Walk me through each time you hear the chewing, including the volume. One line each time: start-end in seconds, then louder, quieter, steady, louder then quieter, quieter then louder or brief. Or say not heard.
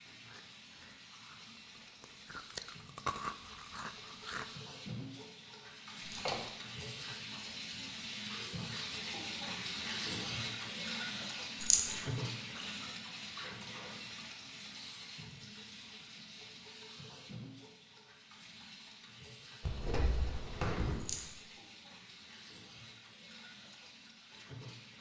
0.1-4.5 louder then quieter.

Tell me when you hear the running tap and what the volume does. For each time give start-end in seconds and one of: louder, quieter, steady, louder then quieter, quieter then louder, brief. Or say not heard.
0.0-24.9 louder then quieter.